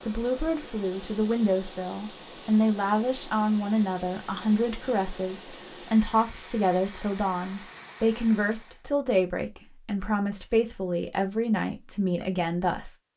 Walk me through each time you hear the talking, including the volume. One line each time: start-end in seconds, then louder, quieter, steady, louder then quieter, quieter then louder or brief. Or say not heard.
0.1-12.9 steady.